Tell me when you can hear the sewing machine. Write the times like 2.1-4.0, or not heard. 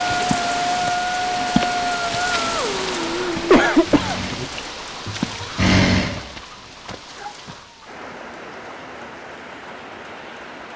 0.1-6.5.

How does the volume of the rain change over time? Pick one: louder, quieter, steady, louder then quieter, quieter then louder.
quieter.